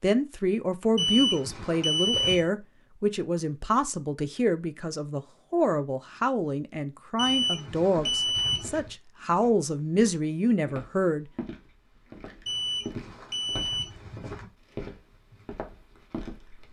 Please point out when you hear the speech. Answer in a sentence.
You can hear the speech from 0.0 to 11.2 s.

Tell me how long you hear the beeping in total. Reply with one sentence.
The beeping can be heard for 5 seconds in total.